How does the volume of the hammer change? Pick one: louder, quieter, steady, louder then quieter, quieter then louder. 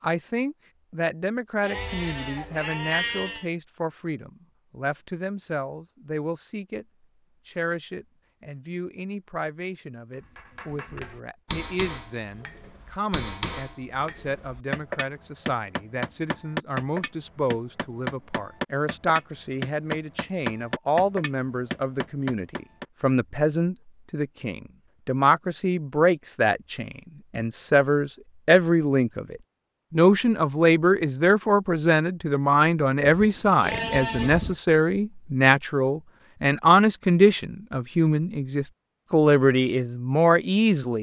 louder.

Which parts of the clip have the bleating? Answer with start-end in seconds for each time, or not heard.
1.6-3.5, 33.0-34.6.